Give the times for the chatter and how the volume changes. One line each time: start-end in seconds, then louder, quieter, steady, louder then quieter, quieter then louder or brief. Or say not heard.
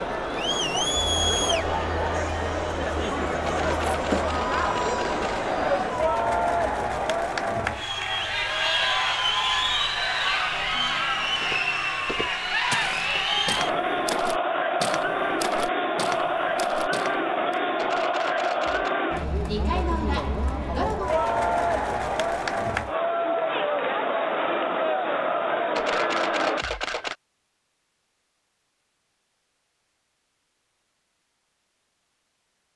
0.0-26.6 steady.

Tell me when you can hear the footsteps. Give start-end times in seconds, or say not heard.
11.4-17.6.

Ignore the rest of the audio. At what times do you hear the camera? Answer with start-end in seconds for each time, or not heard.
3.5-5.2, 17.8-18.9, 25.8-27.1.